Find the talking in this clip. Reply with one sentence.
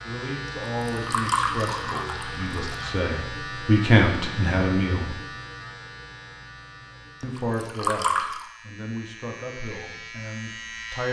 The talking can be heard from 0.0 to 5.2 s and from 7.2 to 11.0 s.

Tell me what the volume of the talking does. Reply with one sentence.
The volume of the talking goes up, then down.